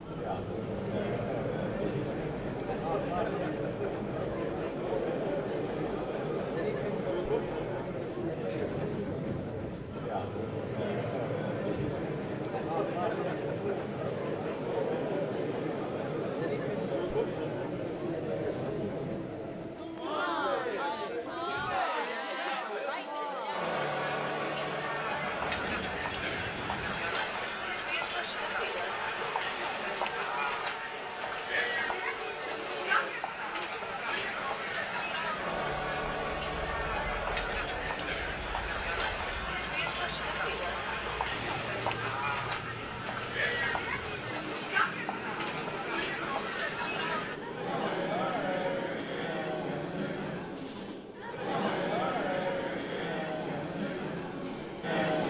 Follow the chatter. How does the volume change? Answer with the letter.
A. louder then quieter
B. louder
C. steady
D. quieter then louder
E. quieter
C.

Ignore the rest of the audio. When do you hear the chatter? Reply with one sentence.
You can hear the chatter from 0.0 to 55.2 s.